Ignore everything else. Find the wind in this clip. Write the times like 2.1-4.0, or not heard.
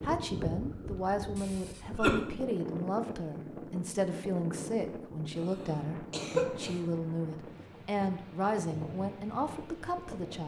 0.0-10.4.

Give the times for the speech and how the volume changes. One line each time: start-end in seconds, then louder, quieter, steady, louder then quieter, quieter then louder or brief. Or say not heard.
0.0-10.4 steady.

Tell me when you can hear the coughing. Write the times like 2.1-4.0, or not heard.
1.4-2.2, 6.1-6.8.